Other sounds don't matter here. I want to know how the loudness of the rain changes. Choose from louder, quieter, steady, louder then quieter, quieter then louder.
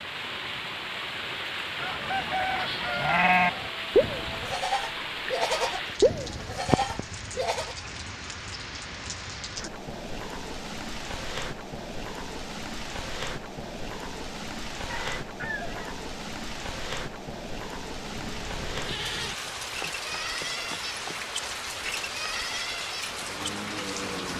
steady.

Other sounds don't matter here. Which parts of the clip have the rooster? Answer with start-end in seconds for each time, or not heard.
1.8-3.7, 14.8-15.9.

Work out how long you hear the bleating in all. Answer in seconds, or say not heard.
11 s.